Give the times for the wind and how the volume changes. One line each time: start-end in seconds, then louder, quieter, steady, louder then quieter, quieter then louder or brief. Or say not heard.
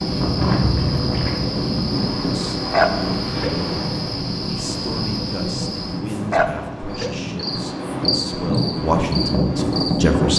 0.0-10.3 quieter then louder.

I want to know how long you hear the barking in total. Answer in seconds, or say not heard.
2 s.